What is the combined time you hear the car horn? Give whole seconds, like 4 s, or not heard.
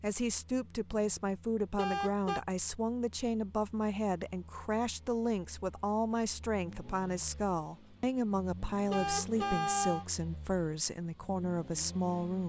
2 s.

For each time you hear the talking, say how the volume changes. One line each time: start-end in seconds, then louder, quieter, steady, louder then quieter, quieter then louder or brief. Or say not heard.
0.0-12.4 steady.